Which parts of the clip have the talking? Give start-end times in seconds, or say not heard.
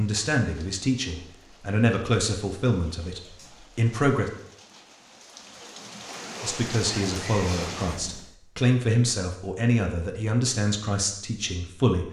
0.0-4.3, 6.4-12.0.